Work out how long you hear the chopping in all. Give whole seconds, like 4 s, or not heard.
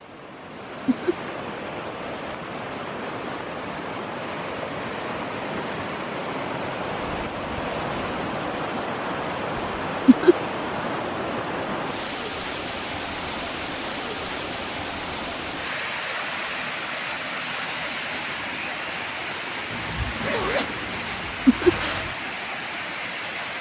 not heard.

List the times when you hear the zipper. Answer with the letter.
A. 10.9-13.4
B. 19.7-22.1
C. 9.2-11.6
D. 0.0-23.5
B.